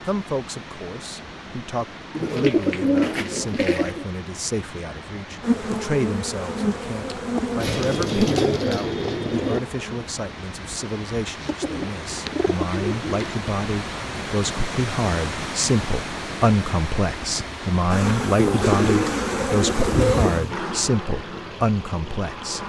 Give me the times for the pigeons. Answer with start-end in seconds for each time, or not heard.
2.1-4.0, 7.6-9.6, 11.4-13.3, 18.4-20.4.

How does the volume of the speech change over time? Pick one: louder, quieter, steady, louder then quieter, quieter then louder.
louder.